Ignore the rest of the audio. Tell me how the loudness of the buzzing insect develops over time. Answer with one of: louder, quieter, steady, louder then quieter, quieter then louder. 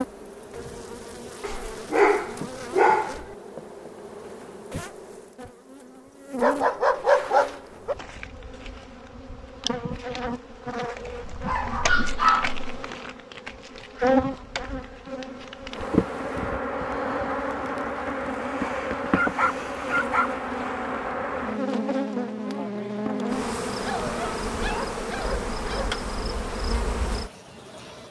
louder.